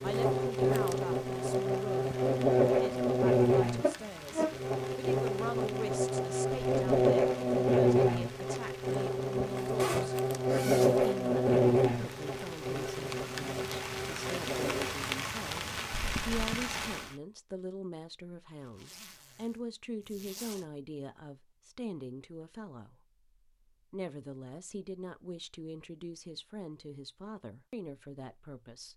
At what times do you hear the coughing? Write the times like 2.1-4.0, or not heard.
not heard.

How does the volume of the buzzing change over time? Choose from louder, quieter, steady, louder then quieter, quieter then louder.
quieter.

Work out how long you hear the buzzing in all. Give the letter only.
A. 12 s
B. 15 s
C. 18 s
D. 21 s
B.